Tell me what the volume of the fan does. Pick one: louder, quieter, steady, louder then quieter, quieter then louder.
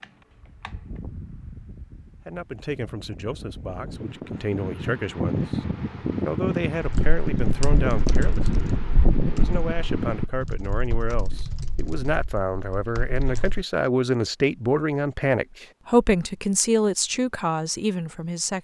louder.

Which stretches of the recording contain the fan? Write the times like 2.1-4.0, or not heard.
0.0-10.3.